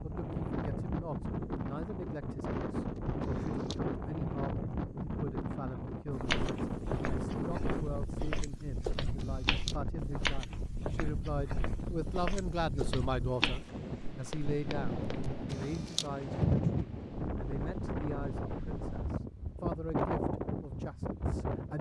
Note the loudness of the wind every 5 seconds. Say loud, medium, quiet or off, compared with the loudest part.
loud, loud, medium, loud, loud.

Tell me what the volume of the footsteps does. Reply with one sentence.
The loudness of the footsteps goes up.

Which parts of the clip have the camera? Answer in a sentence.
You can hear the camera from 3.0 to 3.8 s, from 9.2 to 9.8 s and from 15.2 to 16.1 s.